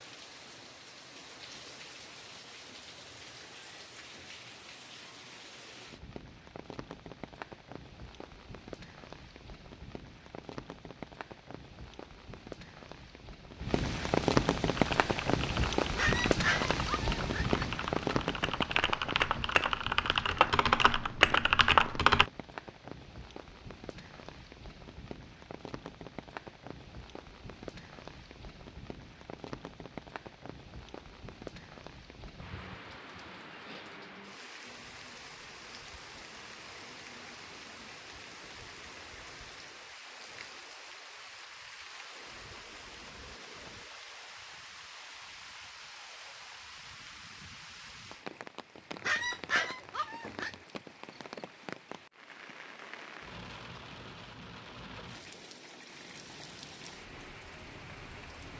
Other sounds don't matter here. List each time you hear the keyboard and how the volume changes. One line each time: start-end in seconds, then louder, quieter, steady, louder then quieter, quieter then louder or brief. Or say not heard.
14.7-22.2 louder.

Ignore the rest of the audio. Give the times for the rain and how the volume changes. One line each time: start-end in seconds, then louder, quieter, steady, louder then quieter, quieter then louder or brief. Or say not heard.
0.0-58.5 louder then quieter.